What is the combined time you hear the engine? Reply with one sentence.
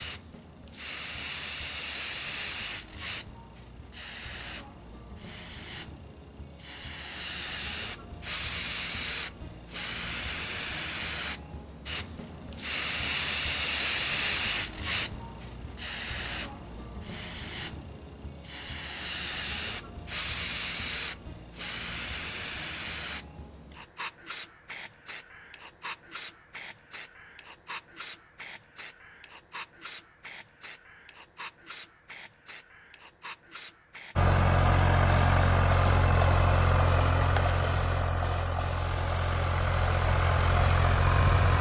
You can hear the engine for 7 seconds altogether.